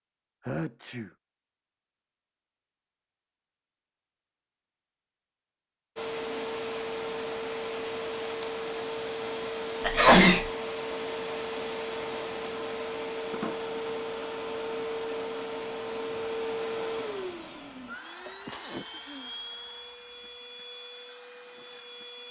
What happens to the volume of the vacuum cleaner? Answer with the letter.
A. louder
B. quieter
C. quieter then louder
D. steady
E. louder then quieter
B.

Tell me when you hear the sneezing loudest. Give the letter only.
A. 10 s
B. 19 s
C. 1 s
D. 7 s
A.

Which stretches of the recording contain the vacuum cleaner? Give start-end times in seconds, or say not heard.
6.0-22.2.